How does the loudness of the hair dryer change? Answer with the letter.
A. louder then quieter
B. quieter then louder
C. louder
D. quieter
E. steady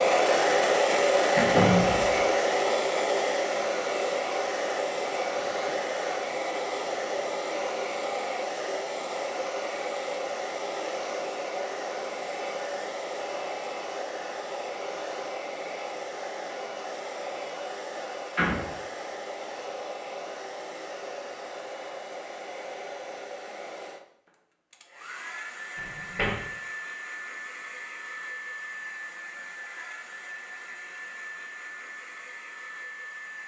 D.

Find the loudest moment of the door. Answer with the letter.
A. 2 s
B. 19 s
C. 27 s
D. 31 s
A.